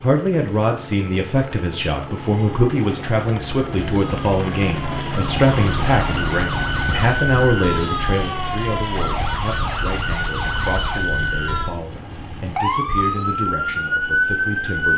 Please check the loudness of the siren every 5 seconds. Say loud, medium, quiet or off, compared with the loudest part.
quiet, loud, loud.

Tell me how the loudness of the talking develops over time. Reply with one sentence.
The loudness of the talking goes down.